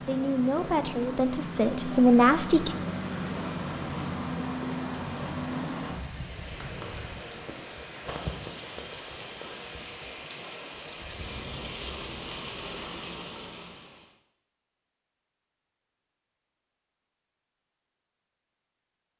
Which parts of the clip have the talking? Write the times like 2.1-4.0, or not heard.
0.1-2.8.